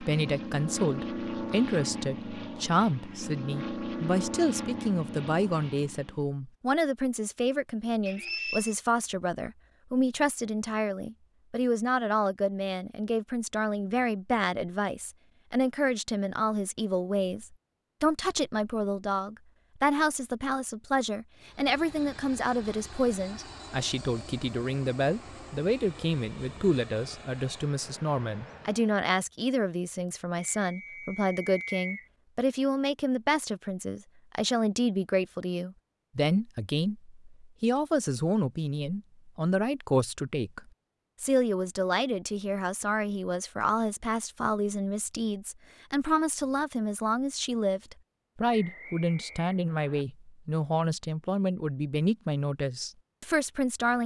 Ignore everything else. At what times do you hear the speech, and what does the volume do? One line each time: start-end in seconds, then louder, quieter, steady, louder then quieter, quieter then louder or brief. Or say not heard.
0.0-54.0 steady.